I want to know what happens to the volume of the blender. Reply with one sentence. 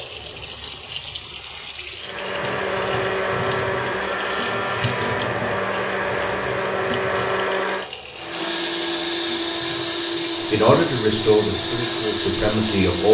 The volume of the blender stays about the same.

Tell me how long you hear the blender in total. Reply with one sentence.
You can hear the blender for 11 seconds altogether.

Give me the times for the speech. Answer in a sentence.
The speech can be heard from 10.5 to 13.0 s.